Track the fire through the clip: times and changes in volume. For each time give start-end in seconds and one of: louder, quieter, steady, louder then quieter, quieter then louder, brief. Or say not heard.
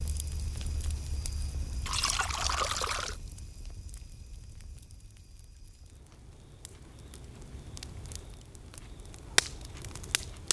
0.0-10.4 quieter then louder.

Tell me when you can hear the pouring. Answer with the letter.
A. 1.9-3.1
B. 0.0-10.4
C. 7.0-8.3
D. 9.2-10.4
A.